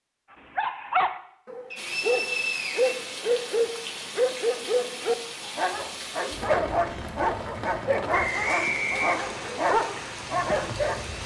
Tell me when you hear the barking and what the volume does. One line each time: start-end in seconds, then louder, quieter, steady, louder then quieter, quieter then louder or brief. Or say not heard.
0.3-11.1 steady.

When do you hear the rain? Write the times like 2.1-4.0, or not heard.
1.8-11.2.